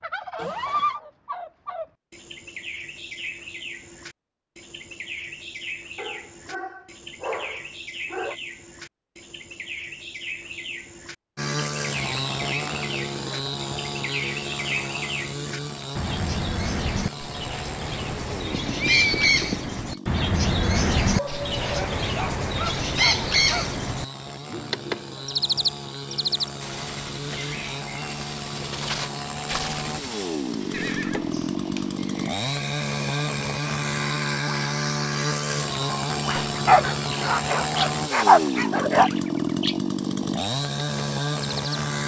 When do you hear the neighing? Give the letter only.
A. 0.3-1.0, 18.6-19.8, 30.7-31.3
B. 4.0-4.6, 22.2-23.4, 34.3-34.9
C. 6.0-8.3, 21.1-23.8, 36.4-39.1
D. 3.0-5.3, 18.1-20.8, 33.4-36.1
A.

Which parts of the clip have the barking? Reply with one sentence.
You can hear the barking from 6.0 to 8.3 s, from 21.1 to 23.8 s and from 36.4 to 39.1 s.